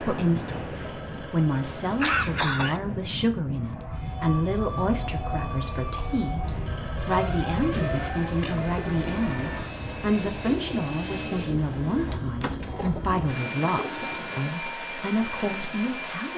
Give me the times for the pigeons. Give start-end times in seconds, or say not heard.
7.7-14.6.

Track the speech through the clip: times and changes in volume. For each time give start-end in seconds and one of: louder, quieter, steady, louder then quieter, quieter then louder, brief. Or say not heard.
0.0-16.3 steady.